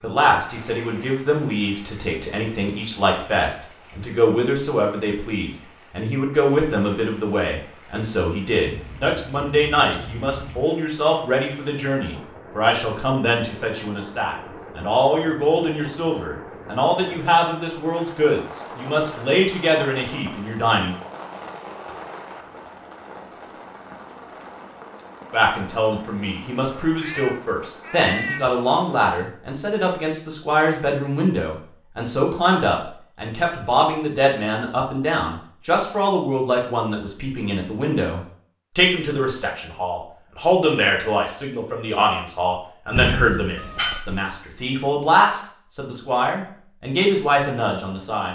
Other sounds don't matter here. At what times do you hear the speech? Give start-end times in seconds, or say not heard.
0.0-20.9, 25.3-48.3.